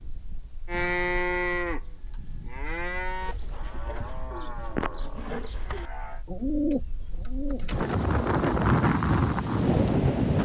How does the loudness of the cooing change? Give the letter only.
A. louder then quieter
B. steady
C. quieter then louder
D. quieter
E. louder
A.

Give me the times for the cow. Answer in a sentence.
The cow can be heard from 0.7 to 6.2 s.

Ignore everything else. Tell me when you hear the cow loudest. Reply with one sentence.
The volume of the cow peaks at 1 second.